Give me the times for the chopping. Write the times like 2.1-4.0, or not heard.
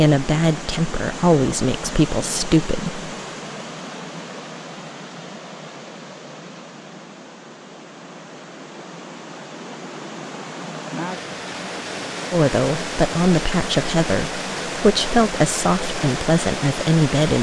not heard.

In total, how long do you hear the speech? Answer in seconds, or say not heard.
8 s.